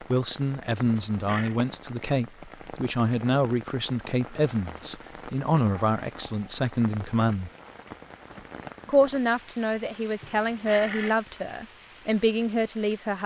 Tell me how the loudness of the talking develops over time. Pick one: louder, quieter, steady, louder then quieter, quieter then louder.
steady.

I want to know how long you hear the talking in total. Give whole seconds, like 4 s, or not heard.
12 s.